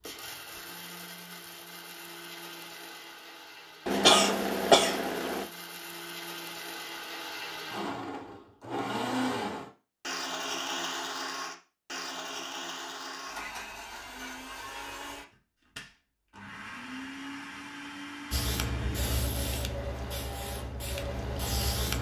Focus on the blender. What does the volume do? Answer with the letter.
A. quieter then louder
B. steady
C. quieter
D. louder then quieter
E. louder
D.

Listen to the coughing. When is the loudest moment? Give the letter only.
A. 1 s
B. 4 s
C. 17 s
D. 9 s
B.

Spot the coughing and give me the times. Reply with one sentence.
You can hear the coughing from 3.9 to 5.5 s.